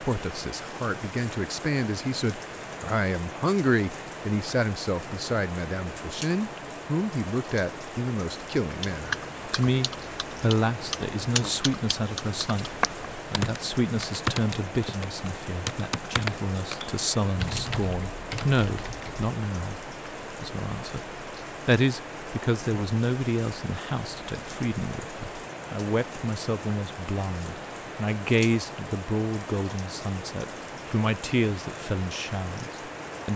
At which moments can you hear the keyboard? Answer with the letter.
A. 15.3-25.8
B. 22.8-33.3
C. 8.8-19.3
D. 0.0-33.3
C.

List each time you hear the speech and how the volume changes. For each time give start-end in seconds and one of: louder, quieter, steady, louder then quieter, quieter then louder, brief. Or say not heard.
0.0-33.3 steady.